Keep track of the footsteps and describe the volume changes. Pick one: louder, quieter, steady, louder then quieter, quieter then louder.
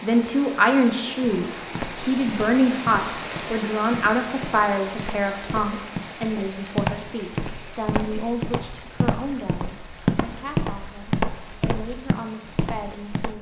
louder.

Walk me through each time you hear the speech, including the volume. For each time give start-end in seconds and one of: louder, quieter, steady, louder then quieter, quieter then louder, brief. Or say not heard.
0.0-13.3 quieter.